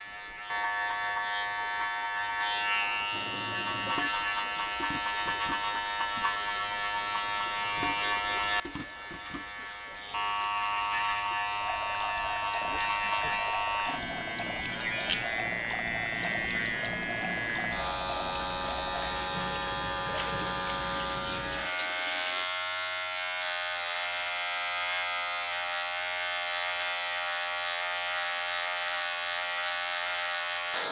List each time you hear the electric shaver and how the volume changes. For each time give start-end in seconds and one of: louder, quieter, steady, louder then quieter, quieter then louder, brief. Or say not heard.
0.0-30.8 steady.